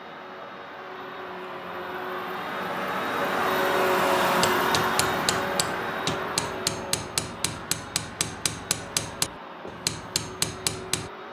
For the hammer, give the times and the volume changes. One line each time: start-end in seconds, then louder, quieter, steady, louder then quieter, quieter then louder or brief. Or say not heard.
4.4-11.1 louder.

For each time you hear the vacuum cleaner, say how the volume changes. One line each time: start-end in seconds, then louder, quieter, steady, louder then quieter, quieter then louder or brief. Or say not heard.
0.0-11.2 louder then quieter.